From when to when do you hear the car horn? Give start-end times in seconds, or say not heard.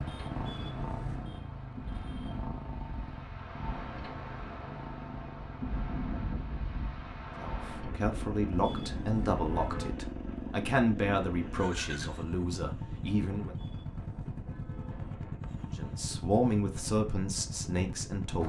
0.3-1.4, 8.5-9.9, 13.4-15.2.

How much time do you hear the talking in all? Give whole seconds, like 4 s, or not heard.
9 s.